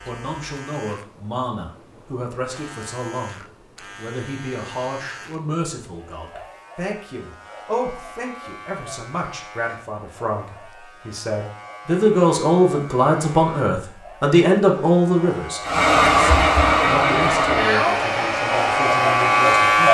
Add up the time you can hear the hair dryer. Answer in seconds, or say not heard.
4 s.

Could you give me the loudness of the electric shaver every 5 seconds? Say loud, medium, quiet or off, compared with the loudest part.
quiet, quiet, quiet, loud.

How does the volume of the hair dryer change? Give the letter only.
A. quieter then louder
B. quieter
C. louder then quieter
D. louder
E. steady
B.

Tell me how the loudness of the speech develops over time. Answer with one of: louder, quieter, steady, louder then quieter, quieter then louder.
louder then quieter.